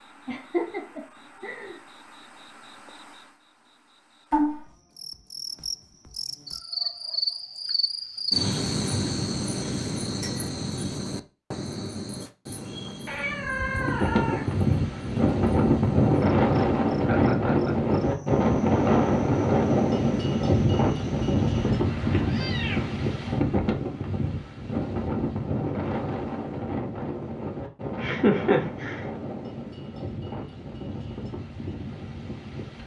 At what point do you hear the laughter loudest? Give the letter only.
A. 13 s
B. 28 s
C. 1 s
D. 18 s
B.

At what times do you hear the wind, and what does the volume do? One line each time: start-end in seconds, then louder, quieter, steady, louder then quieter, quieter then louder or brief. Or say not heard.
13.7-32.8 quieter.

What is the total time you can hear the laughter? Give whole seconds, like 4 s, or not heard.
3 s.